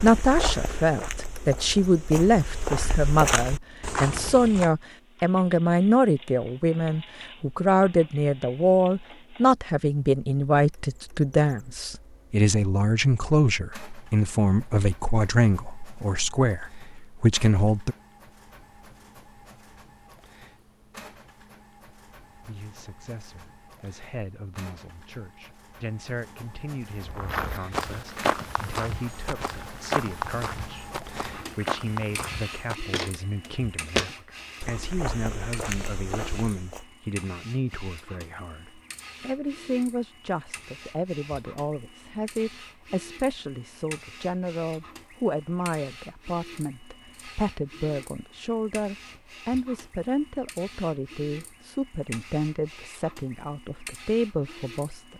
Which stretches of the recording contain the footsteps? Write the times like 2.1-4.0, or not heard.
0.0-4.7, 26.9-36.9.